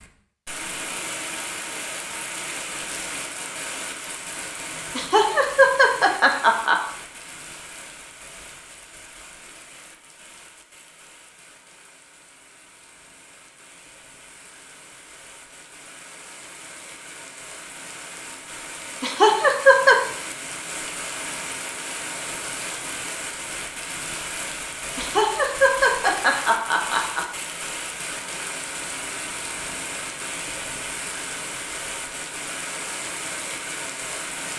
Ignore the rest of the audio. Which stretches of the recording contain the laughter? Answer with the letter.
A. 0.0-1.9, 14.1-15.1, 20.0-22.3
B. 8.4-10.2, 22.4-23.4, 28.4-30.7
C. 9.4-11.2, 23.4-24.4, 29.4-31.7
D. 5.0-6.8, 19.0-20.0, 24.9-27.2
D.